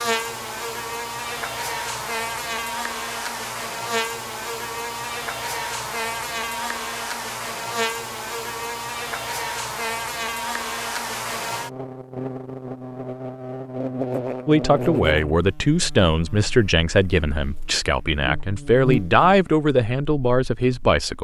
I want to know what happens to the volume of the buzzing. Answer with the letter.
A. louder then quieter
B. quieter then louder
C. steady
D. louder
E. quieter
E.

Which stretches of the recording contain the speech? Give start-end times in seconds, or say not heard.
14.4-21.1.